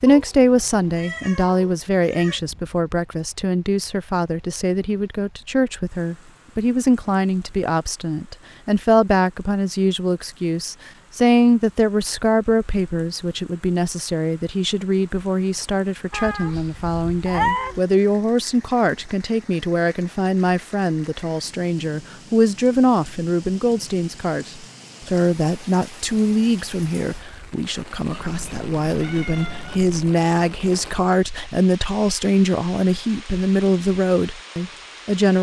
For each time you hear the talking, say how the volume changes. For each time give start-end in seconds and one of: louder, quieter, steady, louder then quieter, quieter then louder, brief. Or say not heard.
0.0-35.3 steady.